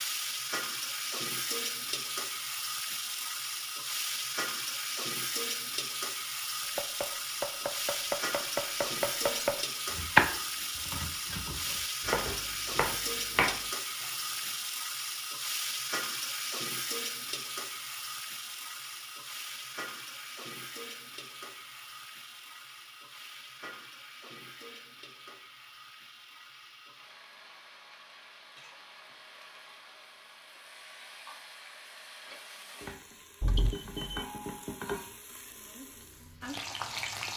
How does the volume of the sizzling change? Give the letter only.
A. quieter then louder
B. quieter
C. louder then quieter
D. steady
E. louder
A.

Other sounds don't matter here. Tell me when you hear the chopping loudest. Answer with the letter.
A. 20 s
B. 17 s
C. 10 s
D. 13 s
C.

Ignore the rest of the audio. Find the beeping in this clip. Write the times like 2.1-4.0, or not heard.
33.4-34.2.